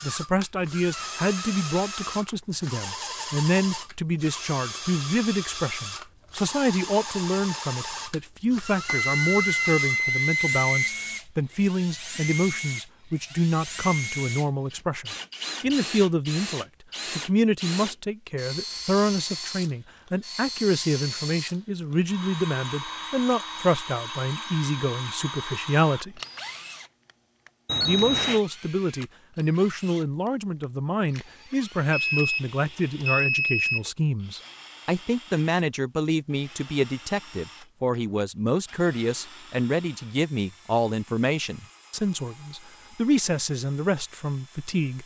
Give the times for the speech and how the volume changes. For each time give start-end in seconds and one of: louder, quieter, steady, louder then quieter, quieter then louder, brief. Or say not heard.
0.0-26.2 steady
27.8-45.0 steady.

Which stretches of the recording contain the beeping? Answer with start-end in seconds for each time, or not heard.
8.8-10.9, 27.6-28.4, 31.9-33.9.